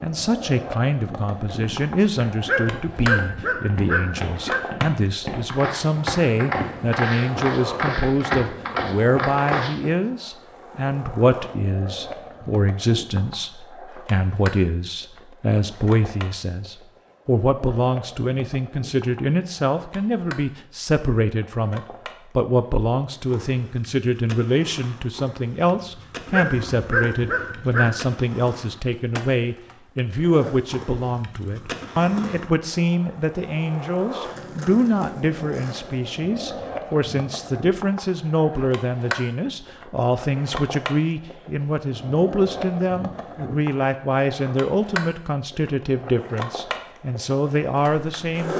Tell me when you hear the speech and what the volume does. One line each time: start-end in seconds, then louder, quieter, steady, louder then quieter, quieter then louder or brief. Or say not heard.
0.0-48.5 steady.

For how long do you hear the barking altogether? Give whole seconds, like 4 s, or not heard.
4 s.